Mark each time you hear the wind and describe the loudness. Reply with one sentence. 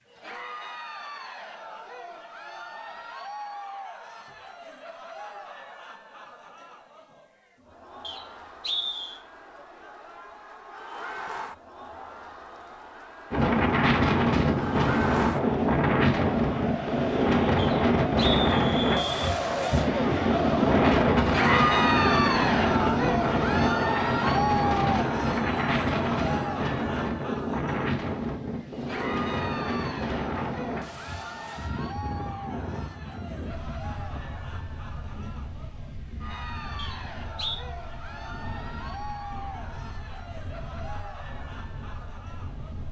You can hear the wind from 13.3 to 42.8 s, getting quieter.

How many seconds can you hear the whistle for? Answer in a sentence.
You can hear the whistle for 4 seconds altogether.